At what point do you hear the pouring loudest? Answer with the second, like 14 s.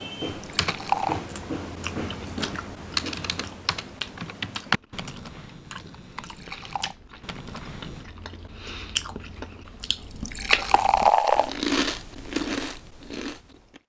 11 s.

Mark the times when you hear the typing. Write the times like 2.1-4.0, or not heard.
0.0-8.1.